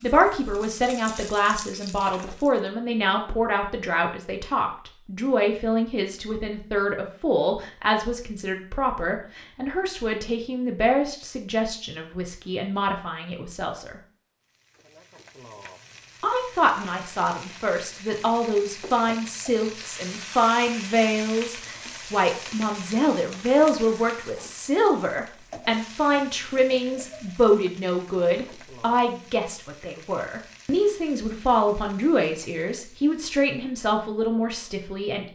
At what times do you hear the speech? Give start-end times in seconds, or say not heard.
0.0-14.0, 16.2-35.3.